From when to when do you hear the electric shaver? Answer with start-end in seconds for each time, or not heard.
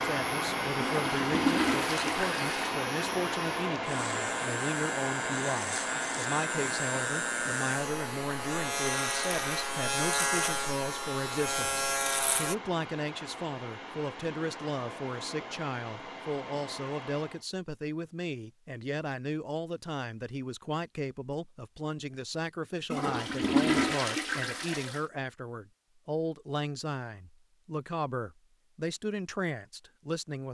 0.0-12.6.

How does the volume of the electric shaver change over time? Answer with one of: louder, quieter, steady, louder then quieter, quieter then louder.
louder.